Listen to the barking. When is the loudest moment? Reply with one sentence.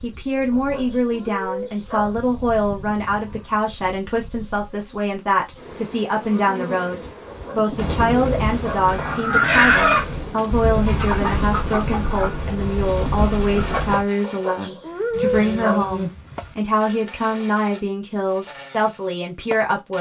The loudest moment of the barking is at 15 seconds.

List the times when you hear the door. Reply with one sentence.
You can't hear the door here.